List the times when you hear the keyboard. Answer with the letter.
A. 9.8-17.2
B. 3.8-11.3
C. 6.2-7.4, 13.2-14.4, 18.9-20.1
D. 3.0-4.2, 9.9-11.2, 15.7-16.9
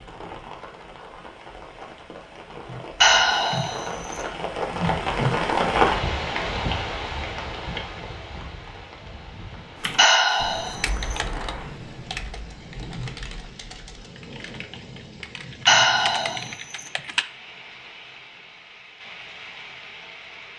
A.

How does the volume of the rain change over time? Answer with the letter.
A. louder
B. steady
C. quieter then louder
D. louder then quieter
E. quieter
D.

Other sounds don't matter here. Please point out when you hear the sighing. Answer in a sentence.
The sighing can be heard from 3.0 to 4.2 s, from 9.9 to 11.2 s and from 15.7 to 16.9 s.